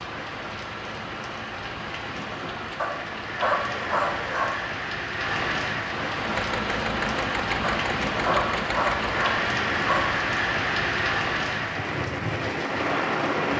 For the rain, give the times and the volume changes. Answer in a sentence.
You can hear the rain from 0.0 to 13.5 s, getting louder.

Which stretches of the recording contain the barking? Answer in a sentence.
You can hear the barking from 2.8 to 4.5 s and from 7.6 to 10.1 s.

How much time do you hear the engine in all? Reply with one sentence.
You can hear the engine for 3 seconds altogether.